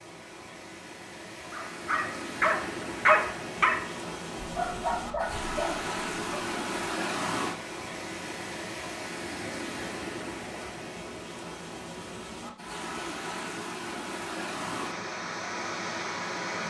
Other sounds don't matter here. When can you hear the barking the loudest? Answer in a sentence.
The loudest moment of the barking is at 3 seconds.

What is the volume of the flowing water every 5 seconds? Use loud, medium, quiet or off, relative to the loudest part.
medium, loud, loud, loud.